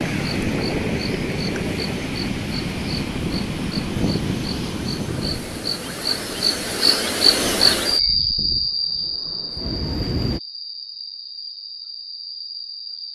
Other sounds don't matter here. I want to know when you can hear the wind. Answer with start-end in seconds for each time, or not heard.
0.0-10.4.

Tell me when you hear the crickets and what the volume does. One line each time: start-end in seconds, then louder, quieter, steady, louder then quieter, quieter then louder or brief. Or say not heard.
0.0-13.1 louder then quieter.